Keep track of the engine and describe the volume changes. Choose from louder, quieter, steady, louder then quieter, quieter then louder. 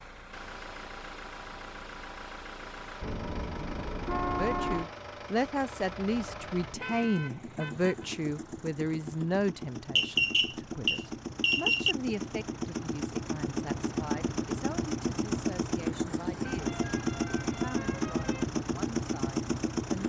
louder.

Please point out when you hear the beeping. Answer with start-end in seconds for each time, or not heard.
9.9-11.9.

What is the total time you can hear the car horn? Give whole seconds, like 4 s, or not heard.
5 s.